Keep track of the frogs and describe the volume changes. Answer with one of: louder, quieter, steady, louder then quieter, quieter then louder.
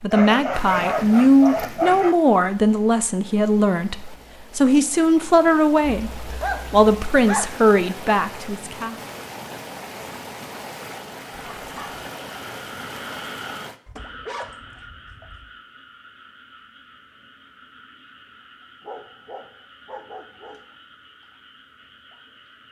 quieter.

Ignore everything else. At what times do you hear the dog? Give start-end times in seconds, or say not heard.
0.1-2.1, 5.9-7.5, 11.3-12.1, 13.8-15.5, 18.8-20.6.